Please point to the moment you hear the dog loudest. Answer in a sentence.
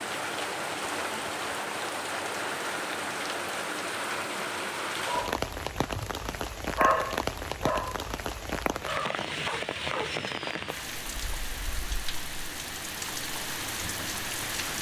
The volume of the dog peaks at 7 seconds.